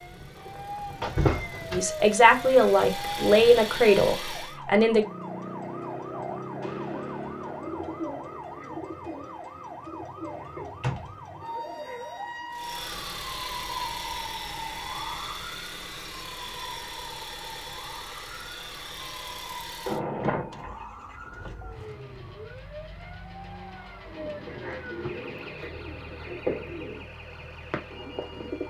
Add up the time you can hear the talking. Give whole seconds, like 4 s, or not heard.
3 s.